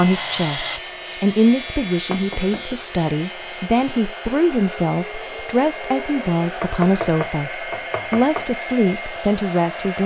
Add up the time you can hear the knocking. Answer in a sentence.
The knocking can be heard for 3 seconds in total.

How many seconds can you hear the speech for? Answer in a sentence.
You can hear the speech for 10 seconds altogether.